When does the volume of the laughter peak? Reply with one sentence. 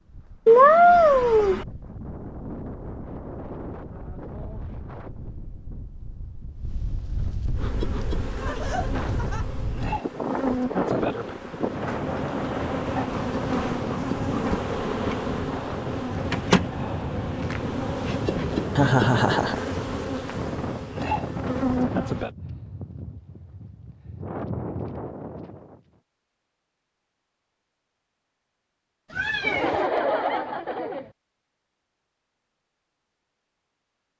The loudest moment of the laughter is at 19 seconds.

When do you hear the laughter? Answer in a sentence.
You can hear the laughter from 8.4 to 9.4 s, from 18.8 to 19.6 s and from 29.4 to 31.1 s.